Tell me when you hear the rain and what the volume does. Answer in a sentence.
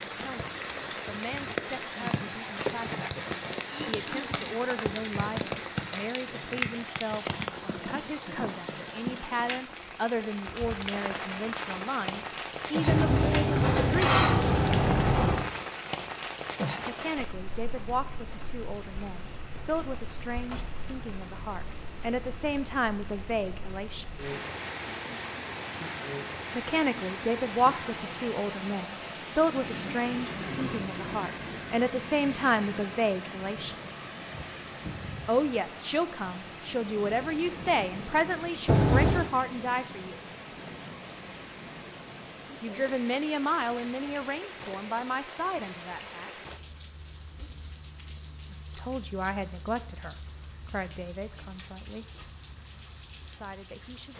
The rain can be heard from 0.0 to 54.1 s, getting quieter.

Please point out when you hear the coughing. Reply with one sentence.
The coughing can be heard from 3.6 to 4.5 s.